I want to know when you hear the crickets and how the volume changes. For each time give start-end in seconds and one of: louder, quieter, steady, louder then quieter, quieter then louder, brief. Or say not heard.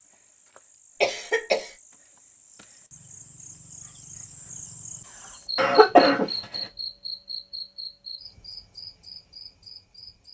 0.0-10.2 louder then quieter.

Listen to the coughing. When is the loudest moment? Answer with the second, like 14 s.
6 s.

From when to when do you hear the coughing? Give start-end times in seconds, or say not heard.
1.0-1.7, 5.5-6.5.